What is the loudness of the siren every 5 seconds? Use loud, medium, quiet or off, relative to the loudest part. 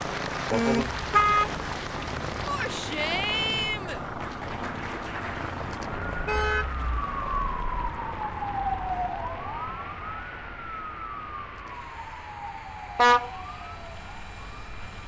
medium, loud, medium.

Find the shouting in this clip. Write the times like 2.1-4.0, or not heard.
2.5-4.0.